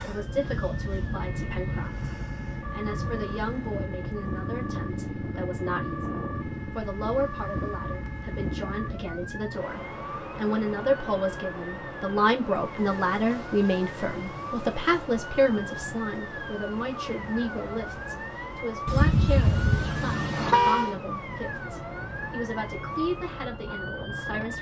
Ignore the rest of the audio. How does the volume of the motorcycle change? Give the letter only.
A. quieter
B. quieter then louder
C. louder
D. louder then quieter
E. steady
E.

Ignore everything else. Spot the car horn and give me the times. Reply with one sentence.
The car horn can be heard from 0.6 to 1.9 s and from 18.9 to 20.9 s.